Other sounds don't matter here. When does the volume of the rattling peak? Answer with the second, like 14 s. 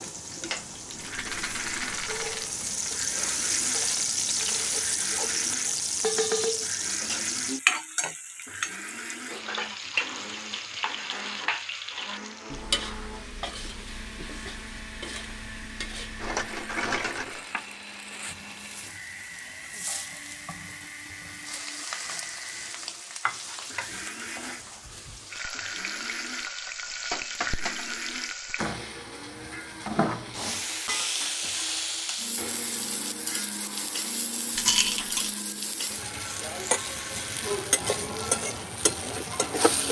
35 s.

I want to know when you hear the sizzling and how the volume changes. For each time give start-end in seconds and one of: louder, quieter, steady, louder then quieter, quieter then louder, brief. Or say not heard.
0.0-39.8 quieter then louder.